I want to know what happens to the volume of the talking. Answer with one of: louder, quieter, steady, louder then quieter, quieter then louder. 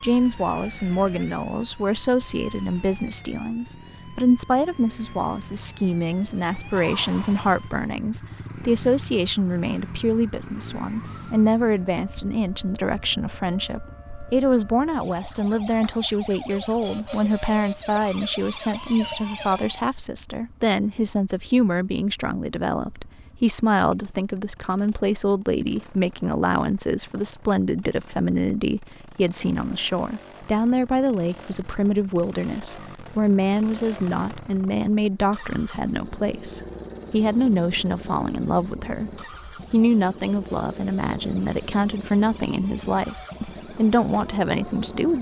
steady.